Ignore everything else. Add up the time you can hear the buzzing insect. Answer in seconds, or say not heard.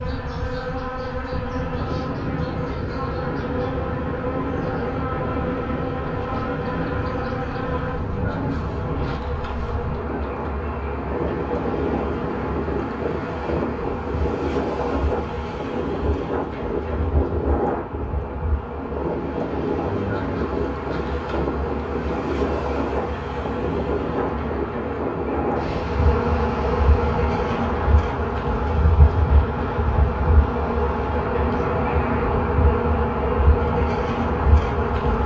35 s.